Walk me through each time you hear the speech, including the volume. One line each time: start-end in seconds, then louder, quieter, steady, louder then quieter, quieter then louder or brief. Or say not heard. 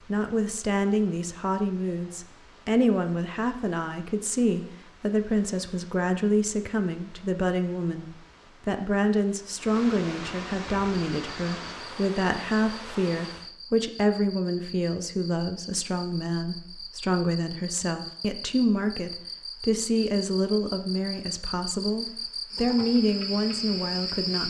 0.1-24.4 steady.